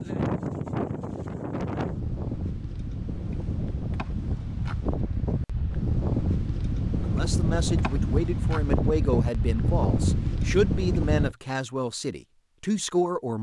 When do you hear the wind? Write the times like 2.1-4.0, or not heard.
0.0-11.3.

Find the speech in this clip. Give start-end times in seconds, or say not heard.
7.0-13.3.